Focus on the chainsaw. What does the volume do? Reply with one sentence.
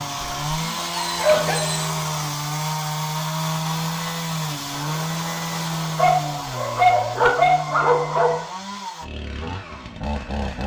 The volume of the chainsaw goes down.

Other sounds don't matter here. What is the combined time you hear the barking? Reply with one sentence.
The barking can be heard for 4 seconds in total.